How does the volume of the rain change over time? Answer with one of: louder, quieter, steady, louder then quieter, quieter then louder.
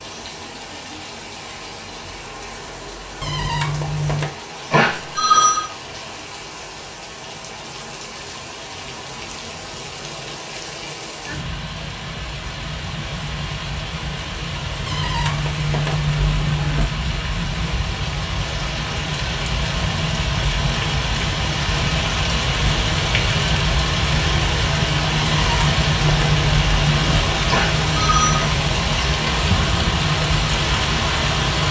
louder.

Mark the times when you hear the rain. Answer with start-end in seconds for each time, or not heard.
0.0-31.6.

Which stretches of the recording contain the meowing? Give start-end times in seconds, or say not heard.
3.2-4.3, 14.8-16.9, 25.2-27.2.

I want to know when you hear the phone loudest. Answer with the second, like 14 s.
5 s.